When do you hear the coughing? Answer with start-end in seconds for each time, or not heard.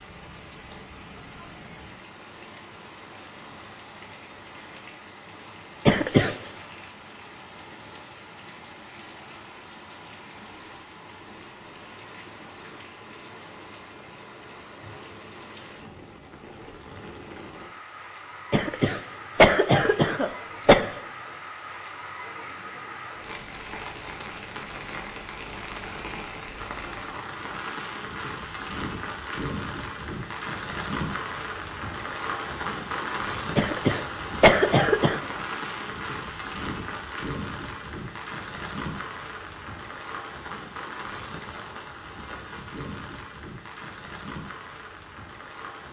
5.8-6.3, 18.5-20.9, 33.5-35.2.